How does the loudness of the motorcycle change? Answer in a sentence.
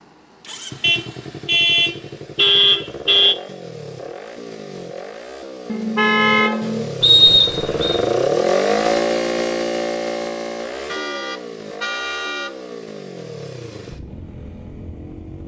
The loudness of the motorcycle goes up, then down.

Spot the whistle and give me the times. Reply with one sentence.
The whistle can be heard from 7.0 to 8.0 s.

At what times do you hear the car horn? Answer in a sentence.
You can hear the car horn from 0.8 to 3.4 s, from 5.7 to 6.9 s and from 10.8 to 12.5 s.